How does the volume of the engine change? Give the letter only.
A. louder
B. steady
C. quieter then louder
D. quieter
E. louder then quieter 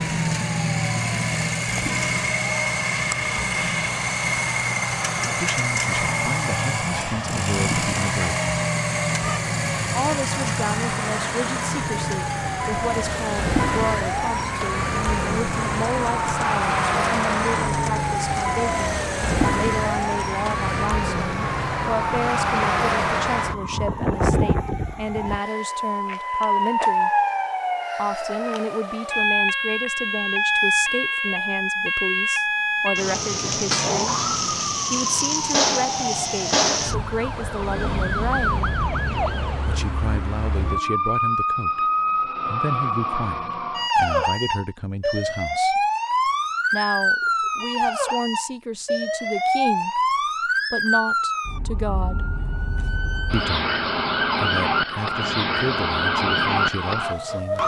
D.